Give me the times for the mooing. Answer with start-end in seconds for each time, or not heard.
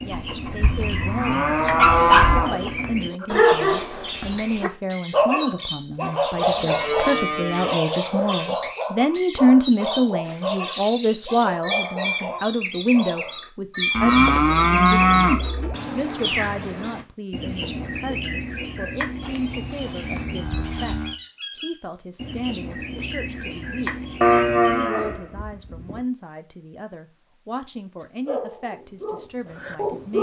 0.1-2.8, 6.3-7.8, 13.9-15.8, 19.2-21.1, 24.2-26.0.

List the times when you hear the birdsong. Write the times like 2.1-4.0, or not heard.
0.0-24.9.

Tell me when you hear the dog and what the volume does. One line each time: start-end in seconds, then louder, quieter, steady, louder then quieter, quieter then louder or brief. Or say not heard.
1.6-13.3 quieter
28.2-30.1 brief.